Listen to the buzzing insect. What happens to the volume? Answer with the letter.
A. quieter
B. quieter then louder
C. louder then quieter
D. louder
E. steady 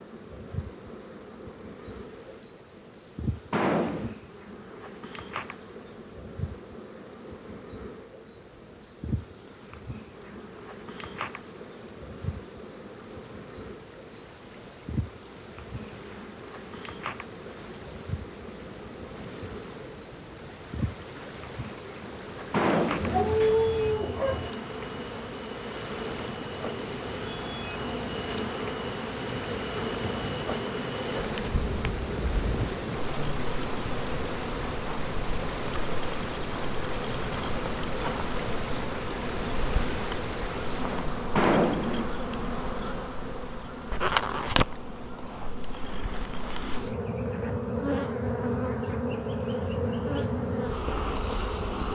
D.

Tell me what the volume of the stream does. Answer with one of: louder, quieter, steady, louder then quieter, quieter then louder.
louder.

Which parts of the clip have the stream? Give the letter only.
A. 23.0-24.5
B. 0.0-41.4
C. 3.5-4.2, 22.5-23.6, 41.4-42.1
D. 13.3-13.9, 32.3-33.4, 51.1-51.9
B.